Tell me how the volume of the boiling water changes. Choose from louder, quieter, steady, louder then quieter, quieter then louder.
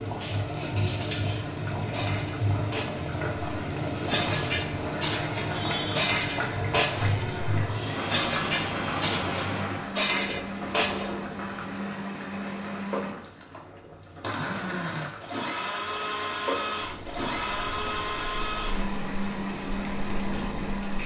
quieter.